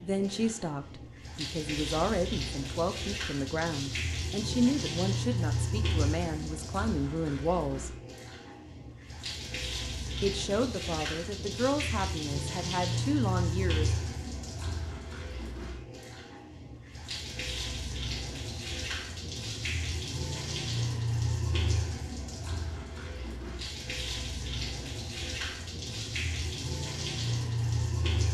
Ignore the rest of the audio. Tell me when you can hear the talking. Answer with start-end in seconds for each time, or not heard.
0.0-7.9, 10.2-14.0.